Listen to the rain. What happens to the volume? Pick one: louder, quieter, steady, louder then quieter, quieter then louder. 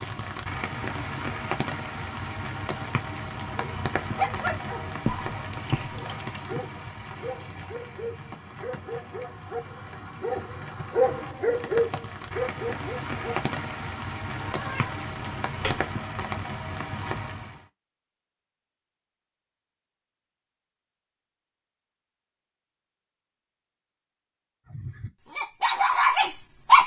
quieter then louder.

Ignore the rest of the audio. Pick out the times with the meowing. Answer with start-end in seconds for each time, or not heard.
5.0-6.7, 14.3-15.8.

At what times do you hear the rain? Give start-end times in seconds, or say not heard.
0.0-17.6.